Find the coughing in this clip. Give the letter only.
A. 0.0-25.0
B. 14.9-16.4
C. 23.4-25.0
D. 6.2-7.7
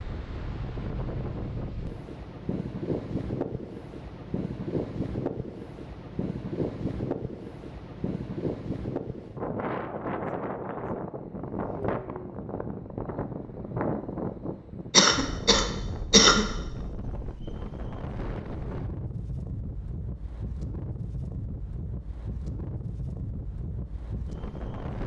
B.